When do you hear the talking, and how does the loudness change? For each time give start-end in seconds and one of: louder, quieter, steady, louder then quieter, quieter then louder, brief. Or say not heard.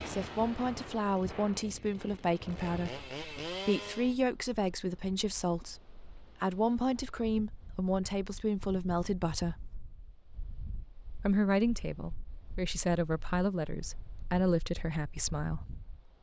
0.1-9.8 steady
11.2-15.6 steady.